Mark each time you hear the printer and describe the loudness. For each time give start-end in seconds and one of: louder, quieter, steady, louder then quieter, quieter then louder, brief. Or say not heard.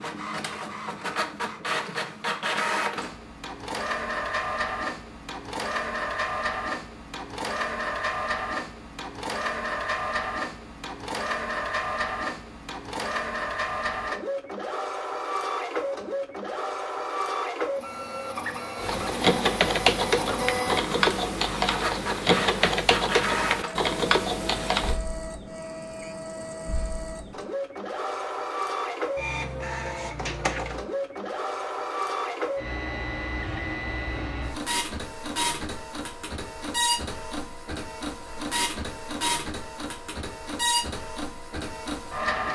0.0-42.4 steady.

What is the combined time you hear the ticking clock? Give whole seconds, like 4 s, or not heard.
not heard.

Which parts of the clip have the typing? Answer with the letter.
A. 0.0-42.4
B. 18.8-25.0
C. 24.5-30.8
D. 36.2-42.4
B.